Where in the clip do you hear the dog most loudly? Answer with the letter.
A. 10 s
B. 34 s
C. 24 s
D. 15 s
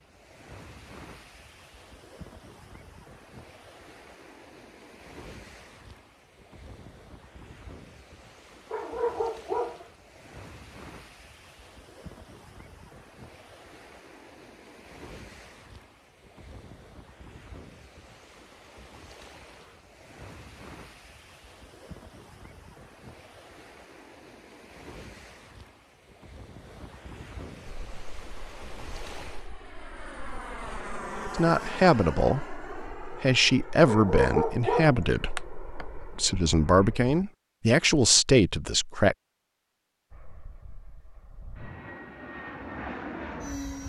B.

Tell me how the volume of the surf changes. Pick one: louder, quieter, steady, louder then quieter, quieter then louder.
steady.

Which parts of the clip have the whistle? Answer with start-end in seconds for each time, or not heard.
not heard.